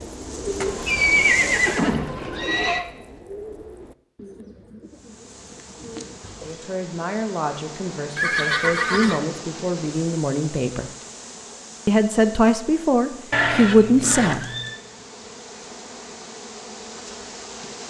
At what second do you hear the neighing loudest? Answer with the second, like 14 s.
1 s.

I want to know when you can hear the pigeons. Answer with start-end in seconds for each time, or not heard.
0.0-6.7.